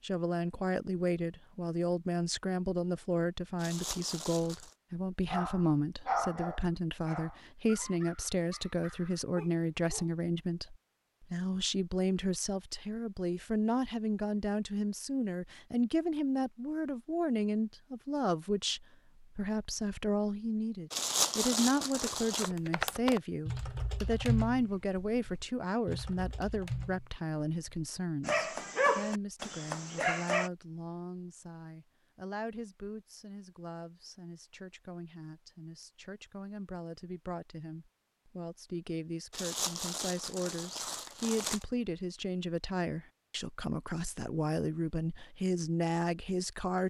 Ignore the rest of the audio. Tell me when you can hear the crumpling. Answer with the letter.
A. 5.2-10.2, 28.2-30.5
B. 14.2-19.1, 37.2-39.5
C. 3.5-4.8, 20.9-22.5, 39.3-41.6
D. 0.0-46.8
C.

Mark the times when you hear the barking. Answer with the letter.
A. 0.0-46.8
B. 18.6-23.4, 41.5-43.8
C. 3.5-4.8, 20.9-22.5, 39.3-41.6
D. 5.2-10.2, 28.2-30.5
D.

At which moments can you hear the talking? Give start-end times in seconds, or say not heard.
0.0-46.8.